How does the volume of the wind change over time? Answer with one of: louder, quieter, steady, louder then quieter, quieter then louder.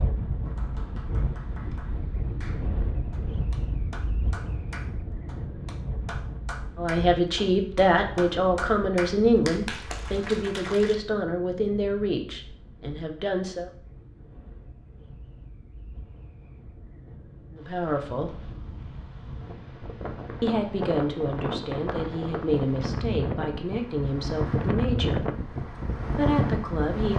quieter then louder.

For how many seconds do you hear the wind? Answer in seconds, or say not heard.
27 s.